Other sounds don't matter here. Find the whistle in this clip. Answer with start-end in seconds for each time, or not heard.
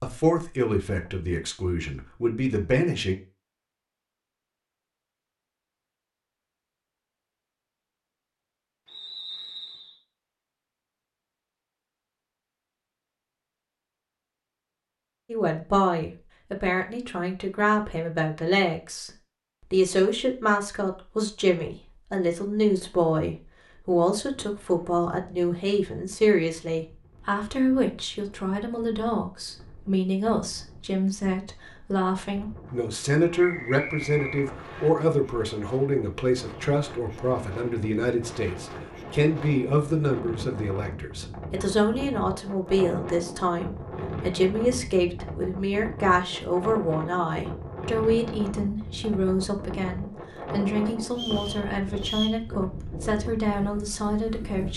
8.8-10.0, 33.4-34.9, 51.1-52.4.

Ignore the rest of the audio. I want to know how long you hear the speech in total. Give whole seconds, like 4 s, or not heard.
42 s.